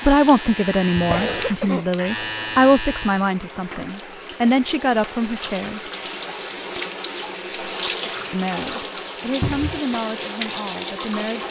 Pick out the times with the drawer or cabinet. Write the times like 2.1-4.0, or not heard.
0.9-1.6, 9.4-9.8.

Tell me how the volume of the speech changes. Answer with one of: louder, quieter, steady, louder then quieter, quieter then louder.
quieter.